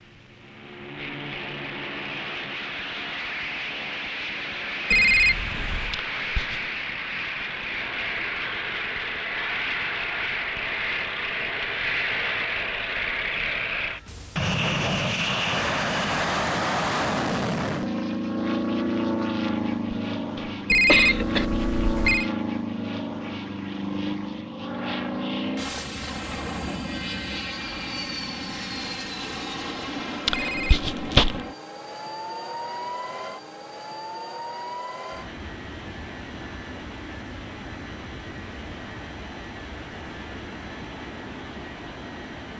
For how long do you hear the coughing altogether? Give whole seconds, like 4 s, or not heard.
4 s.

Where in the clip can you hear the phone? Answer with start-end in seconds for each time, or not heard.
4.9-6.0, 20.6-22.3, 30.3-30.9.